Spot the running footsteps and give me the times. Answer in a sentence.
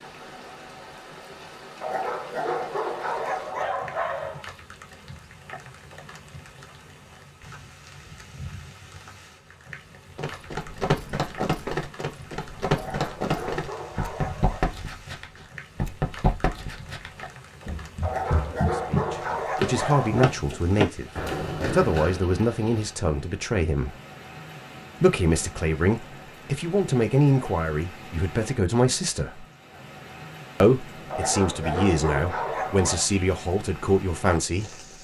The running footsteps can be heard from 10.2 to 22.2 s.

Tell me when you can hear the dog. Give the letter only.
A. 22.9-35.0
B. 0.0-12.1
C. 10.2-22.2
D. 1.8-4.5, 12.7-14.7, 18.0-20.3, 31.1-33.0
D.